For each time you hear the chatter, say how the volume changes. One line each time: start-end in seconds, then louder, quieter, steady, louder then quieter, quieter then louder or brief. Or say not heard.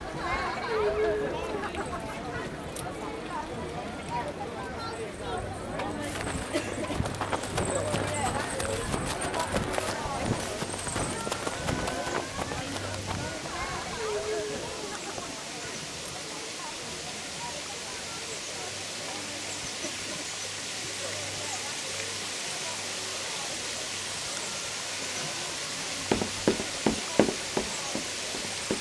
0.0-28.7 quieter.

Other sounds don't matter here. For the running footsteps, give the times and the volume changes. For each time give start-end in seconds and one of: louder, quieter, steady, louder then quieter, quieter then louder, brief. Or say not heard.
6.0-15.3 quieter
25.8-28.7 brief.